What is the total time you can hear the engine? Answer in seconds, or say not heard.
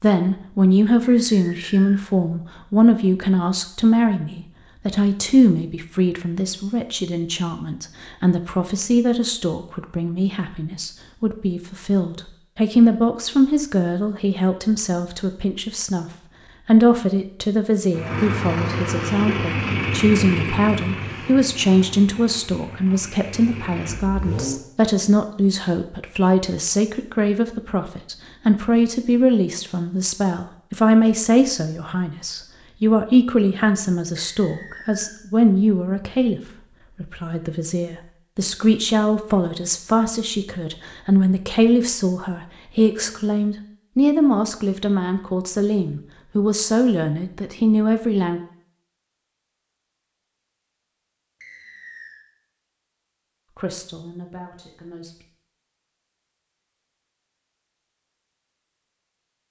7 s.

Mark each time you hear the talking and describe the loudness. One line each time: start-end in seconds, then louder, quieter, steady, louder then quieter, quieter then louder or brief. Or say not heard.
0.0-16.1 quieter then louder
16.6-48.4 steady
53.5-55.1 brief.